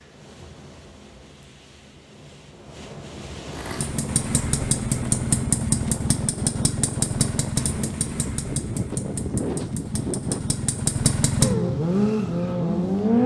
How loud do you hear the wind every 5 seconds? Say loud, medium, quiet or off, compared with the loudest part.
medium, loud, loud.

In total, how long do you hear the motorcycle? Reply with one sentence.
You can hear the motorcycle for 10 seconds altogether.